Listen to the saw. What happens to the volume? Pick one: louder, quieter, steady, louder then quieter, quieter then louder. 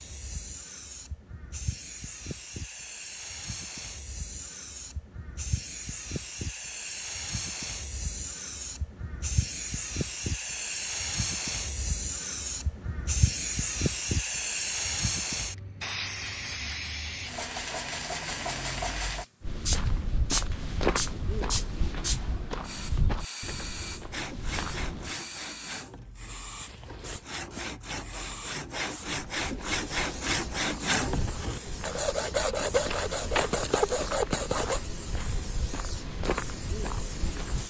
louder.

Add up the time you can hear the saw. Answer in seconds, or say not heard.
11 s.